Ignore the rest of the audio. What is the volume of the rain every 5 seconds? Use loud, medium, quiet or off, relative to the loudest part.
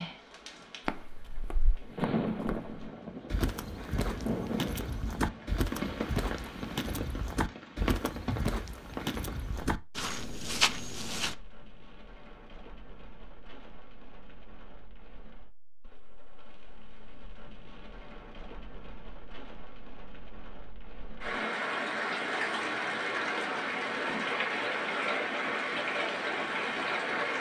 medium, medium, quiet, quiet, loud, loud.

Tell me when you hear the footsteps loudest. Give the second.
11 s.